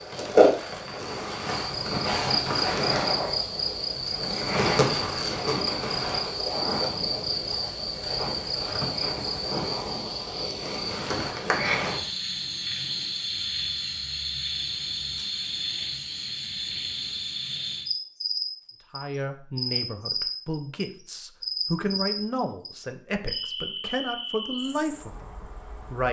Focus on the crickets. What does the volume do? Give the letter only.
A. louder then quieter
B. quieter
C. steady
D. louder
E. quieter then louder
B.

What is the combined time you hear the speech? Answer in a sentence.
The speech can be heard for 7 seconds in total.